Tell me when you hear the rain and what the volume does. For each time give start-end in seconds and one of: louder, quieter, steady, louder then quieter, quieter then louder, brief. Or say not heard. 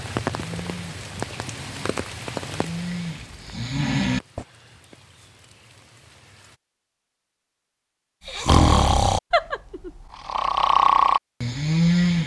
0.0-6.6 quieter.